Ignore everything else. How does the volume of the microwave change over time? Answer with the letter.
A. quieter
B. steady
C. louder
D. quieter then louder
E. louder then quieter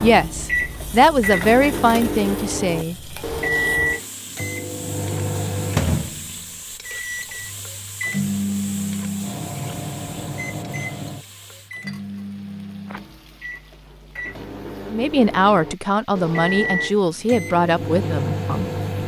D.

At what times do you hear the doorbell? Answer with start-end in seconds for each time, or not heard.
not heard.